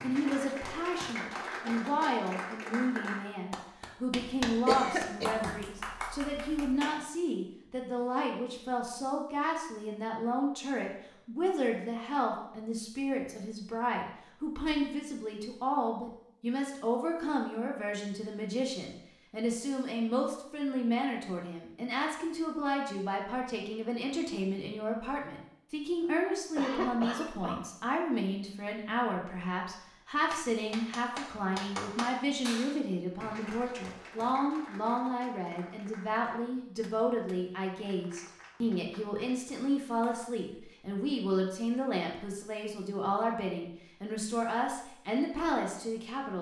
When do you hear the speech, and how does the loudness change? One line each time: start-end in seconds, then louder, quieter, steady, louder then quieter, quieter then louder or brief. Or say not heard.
0.0-46.3 steady.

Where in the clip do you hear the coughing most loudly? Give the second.
5 s.